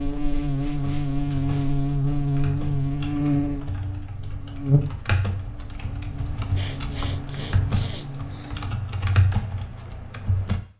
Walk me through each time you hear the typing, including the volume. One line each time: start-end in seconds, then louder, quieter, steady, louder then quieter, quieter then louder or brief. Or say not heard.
0.8-10.6 louder.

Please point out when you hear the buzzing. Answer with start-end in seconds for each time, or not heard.
0.0-8.8.